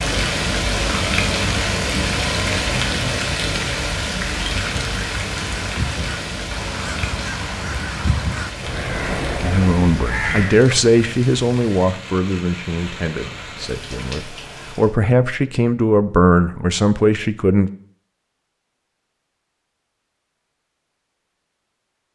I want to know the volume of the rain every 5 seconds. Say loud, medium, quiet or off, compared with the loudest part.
loud, medium, quiet, off, off.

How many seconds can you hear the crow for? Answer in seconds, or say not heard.
6 s.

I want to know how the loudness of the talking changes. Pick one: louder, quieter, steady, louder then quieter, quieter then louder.
quieter then louder.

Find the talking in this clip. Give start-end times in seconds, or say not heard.
9.4-17.7.